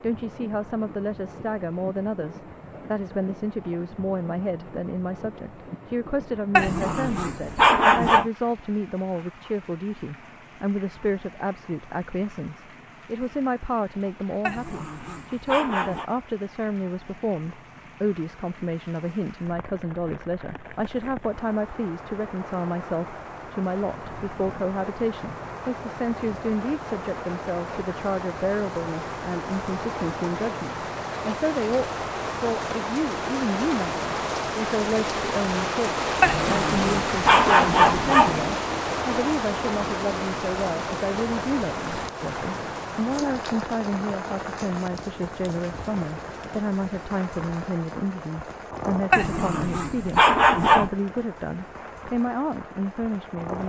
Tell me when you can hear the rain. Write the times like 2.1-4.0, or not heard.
0.0-53.6.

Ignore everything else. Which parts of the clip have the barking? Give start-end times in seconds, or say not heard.
6.5-8.2, 14.4-16.1, 36.2-38.5, 49.1-50.9.